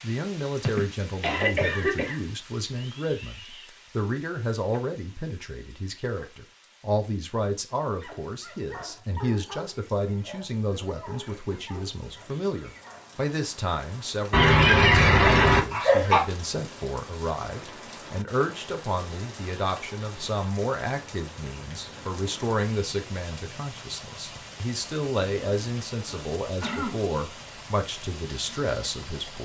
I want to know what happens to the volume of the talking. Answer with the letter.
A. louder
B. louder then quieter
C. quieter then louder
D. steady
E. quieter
D.